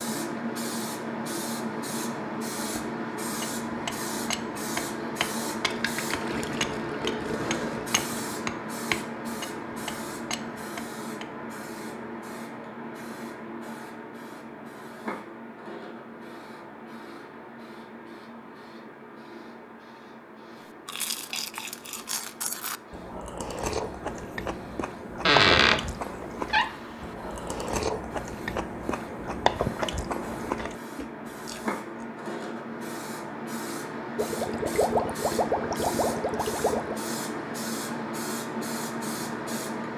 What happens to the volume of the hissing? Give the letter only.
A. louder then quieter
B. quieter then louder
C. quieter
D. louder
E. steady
B.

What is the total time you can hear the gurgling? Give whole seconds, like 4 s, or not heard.
5 s.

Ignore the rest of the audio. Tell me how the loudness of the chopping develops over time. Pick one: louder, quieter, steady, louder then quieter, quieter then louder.
louder then quieter.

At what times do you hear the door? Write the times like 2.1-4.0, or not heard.
25.2-27.1.